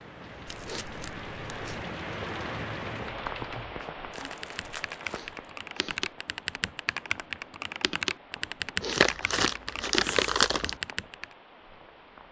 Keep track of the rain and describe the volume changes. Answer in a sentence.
The volume of the rain goes down.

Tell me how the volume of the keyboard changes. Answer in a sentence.
The volume of the keyboard goes up.